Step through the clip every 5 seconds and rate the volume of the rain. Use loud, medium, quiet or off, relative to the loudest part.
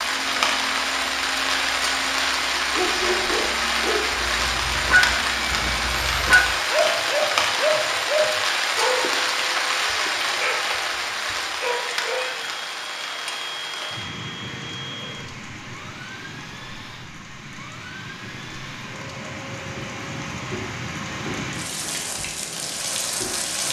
loud, loud, medium, quiet, medium.